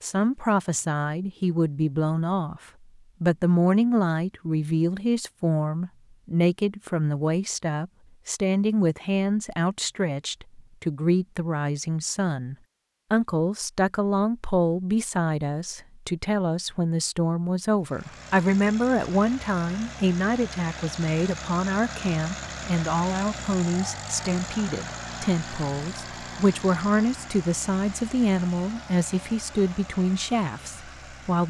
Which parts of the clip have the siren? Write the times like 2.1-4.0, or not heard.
not heard.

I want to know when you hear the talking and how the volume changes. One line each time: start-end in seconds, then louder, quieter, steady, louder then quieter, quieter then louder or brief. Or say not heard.
0.0-2.6 brief
3.2-31.4 steady.